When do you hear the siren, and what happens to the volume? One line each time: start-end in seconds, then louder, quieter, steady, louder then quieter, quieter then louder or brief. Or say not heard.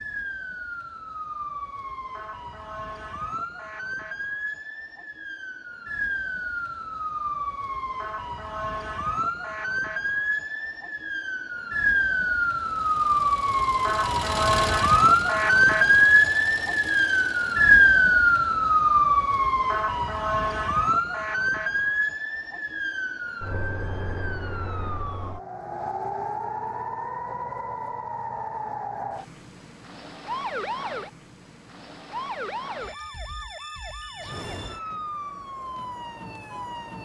0.0-37.0 louder then quieter.